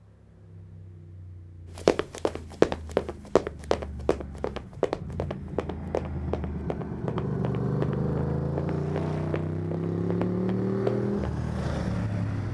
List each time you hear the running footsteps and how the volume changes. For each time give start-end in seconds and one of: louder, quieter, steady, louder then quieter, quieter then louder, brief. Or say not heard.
1.8-11.4 quieter.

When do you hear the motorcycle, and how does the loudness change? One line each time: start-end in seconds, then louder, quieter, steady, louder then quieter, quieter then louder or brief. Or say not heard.
0.0-12.4 louder.